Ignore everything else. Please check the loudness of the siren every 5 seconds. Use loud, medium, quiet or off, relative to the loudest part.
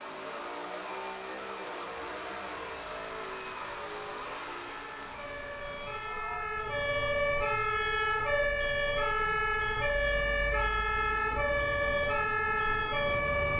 quiet, loud, loud.